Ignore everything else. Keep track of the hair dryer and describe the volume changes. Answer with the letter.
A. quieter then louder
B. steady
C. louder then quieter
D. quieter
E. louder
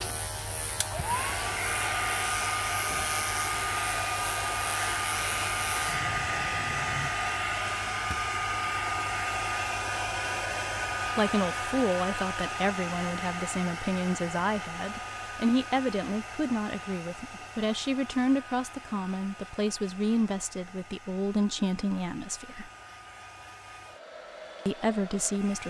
D.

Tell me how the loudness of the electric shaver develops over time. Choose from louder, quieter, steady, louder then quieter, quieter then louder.
steady.